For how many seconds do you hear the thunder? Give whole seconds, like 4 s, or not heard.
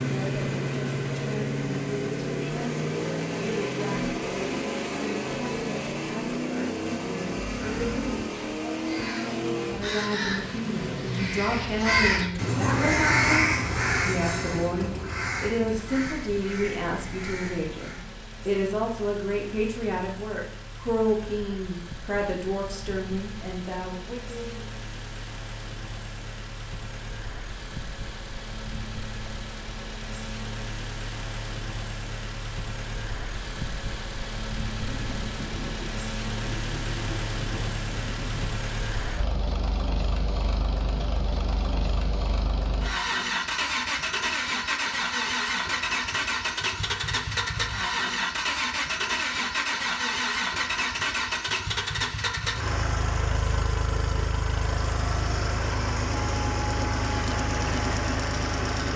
4 s.